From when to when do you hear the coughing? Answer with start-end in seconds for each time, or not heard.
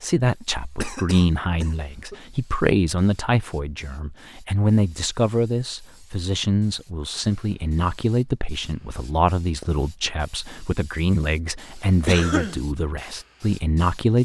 0.8-2.1, 12.1-12.6.